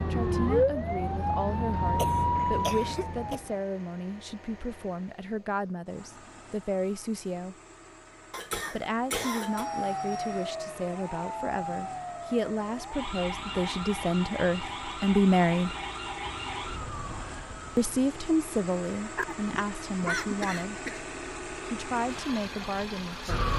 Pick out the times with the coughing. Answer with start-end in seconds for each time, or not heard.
1.9-3.4, 8.3-9.7, 19.1-21.0.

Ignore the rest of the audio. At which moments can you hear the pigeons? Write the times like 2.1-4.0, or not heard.
not heard.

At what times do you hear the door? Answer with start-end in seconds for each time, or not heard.
not heard.